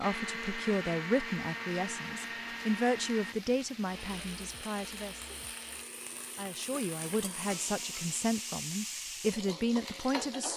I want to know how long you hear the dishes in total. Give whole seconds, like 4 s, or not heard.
not heard.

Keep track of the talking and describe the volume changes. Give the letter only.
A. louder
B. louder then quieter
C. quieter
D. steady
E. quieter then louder
E.